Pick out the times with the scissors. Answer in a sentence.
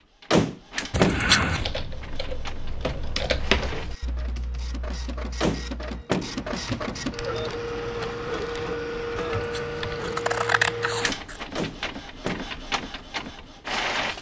You can hear the scissors from 0.9 to 1.7 s and from 9.3 to 11.4 s.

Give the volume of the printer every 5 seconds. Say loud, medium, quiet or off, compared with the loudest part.
medium, loud, loud.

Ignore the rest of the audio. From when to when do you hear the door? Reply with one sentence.
The door can be heard from 0.3 to 1.2 s, from 5.4 to 6.3 s and from 11.6 to 12.5 s.